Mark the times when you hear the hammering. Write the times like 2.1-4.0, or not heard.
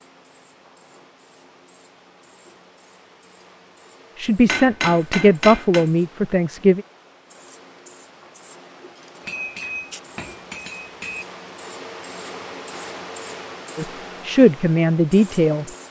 4.5-5.8, 9.2-11.2.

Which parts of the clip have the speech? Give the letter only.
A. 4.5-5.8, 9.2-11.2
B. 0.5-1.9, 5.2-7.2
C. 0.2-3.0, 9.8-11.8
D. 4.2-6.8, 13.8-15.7
D.